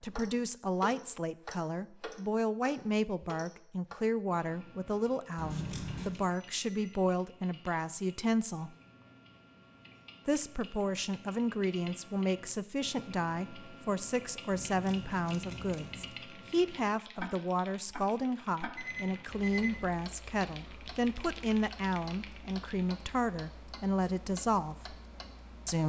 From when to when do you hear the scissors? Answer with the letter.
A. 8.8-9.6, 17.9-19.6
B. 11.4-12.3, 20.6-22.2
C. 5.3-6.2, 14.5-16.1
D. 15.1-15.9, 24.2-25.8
C.